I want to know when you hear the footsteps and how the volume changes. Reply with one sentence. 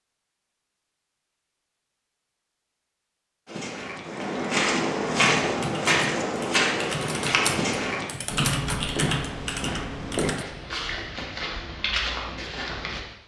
The footsteps can be heard from 3.5 to 13.0 s, getting quieter.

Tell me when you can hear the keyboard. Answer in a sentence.
The keyboard can be heard from 5.4 to 10.4 s.